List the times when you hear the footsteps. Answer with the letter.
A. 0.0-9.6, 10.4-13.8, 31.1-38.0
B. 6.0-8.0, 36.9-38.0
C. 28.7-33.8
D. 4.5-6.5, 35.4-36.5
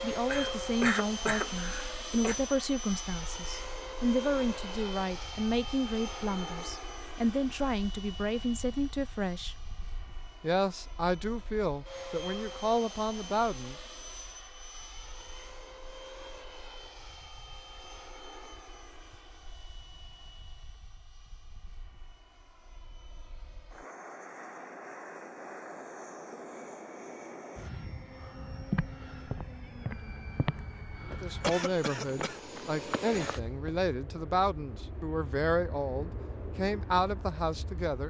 C.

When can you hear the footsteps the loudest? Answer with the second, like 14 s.
29 s.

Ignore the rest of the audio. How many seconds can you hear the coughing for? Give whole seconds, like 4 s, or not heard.
3 s.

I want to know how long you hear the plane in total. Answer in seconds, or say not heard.
38 s.